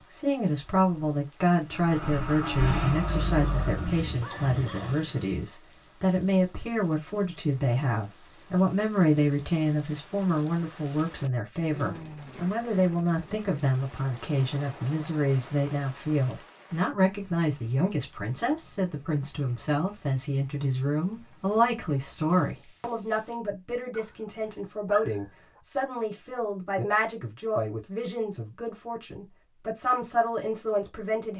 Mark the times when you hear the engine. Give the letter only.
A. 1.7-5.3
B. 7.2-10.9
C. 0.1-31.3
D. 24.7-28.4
A.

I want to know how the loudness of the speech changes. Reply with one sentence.
The loudness of the speech stays about the same.